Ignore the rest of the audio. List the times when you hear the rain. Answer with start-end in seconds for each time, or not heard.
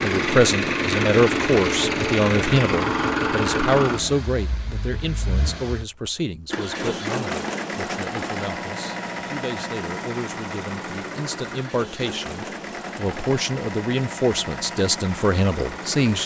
not heard.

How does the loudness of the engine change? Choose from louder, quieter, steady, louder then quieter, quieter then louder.
quieter.